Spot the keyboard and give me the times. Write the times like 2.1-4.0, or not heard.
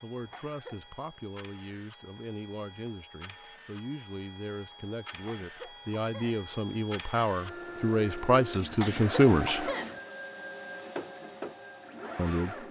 not heard.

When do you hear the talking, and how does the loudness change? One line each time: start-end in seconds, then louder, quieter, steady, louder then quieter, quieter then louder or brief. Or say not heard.
0.0-9.7 louder
12.2-12.6 brief.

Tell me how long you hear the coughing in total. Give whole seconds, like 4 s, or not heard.
3 s.